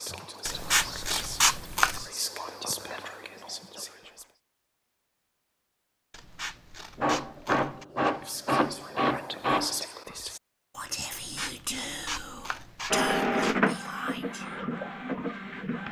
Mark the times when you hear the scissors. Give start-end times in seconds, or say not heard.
0.5-2.0, 6.1-7.8, 11.1-13.6.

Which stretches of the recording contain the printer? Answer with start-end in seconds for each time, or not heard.
7.0-9.8, 12.9-15.8.